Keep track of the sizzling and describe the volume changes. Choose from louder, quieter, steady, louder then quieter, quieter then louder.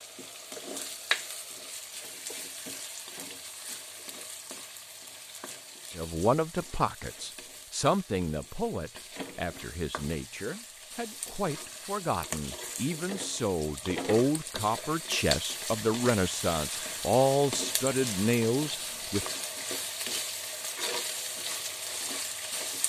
quieter then louder.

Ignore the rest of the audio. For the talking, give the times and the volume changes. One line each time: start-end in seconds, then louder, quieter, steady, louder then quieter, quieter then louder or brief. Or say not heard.
6.0-19.2 quieter then louder.